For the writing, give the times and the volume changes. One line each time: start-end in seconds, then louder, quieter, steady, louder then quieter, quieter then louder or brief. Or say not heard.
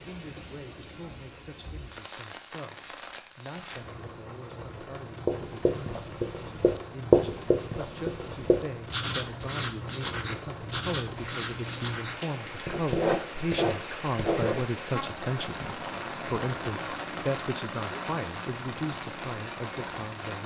5.2-14.8 quieter then louder.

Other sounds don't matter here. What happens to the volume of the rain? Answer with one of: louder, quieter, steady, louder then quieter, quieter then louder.
louder.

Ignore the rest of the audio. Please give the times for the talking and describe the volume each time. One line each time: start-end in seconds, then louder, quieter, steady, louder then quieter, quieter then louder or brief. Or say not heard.
0.1-20.4 louder.